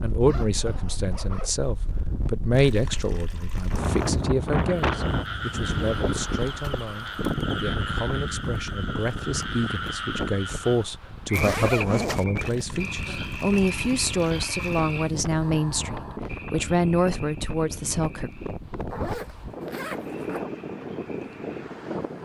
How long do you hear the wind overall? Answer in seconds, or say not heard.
22 s.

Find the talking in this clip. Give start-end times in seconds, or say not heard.
0.0-18.3.